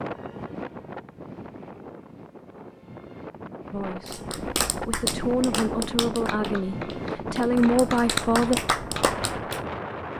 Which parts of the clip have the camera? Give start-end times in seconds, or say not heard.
not heard.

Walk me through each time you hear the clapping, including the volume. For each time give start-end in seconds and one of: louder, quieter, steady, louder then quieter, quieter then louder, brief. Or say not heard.
4.0-9.6 quieter then louder.